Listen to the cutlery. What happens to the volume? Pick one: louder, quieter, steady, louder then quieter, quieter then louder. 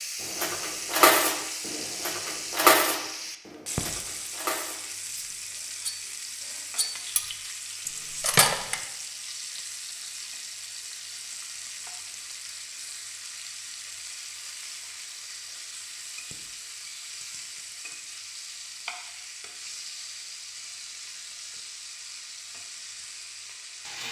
quieter then louder.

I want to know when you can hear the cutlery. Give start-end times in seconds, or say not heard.
0.3-8.8.